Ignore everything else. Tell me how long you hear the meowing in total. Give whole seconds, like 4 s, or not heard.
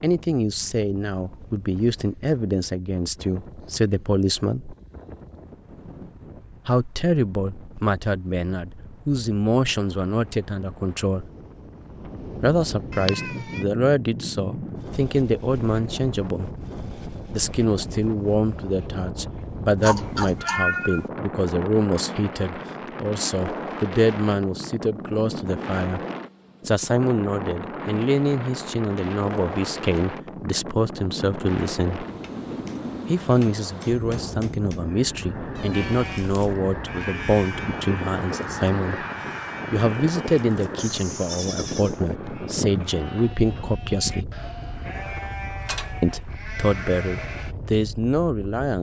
3 s.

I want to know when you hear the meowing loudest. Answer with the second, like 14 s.
21 s.